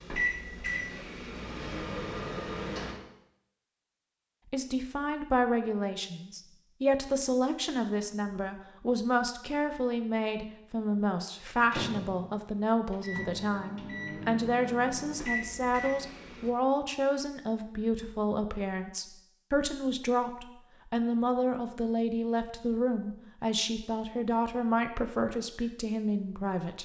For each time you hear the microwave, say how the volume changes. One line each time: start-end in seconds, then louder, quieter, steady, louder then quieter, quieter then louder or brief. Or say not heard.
0.0-3.0 brief
11.6-16.5 louder.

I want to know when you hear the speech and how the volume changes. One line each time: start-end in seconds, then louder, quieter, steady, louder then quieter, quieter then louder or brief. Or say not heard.
4.5-26.8 steady.